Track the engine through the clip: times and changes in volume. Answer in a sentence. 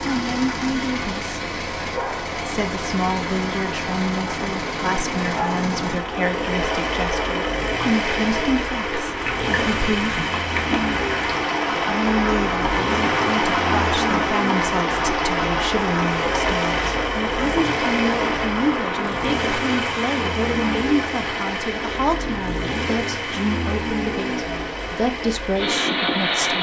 The engine can be heard from 0.0 to 26.5 s, at a steady volume.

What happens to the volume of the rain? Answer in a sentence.
The volume of the rain goes up, then down.